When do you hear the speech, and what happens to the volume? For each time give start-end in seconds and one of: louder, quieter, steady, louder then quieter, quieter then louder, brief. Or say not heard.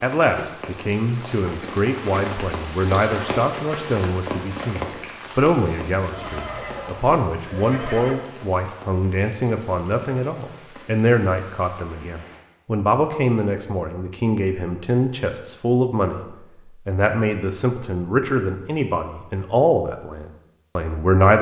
0.0-21.3 steady.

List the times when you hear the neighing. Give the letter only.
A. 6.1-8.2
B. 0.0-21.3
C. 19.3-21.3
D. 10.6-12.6
A.